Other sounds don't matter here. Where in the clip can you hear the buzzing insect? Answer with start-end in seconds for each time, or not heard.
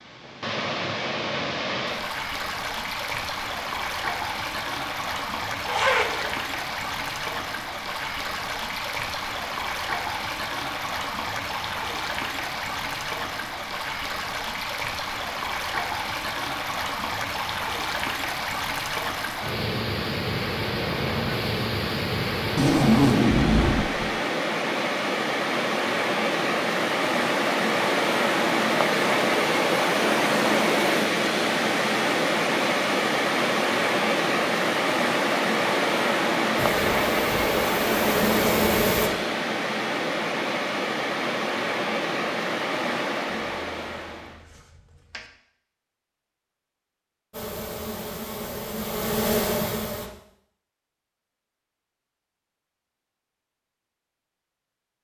36.5-39.1, 47.3-50.1.